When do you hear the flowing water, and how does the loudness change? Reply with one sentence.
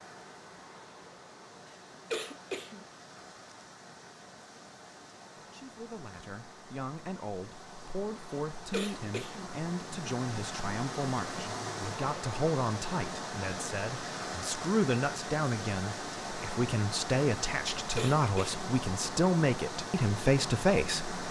You can hear the flowing water from 0.0 to 21.2 s, getting louder.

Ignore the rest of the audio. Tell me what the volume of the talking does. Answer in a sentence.
The loudness of the talking goes up.